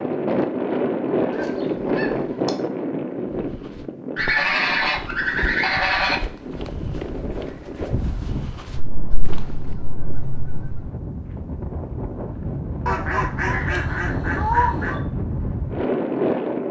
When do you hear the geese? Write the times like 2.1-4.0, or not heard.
1.4-2.5, 4.2-6.2, 8.8-10.8, 12.8-15.0.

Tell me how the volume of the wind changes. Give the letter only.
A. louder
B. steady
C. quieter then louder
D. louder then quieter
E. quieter
C.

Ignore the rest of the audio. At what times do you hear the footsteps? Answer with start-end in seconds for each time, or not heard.
3.2-9.8.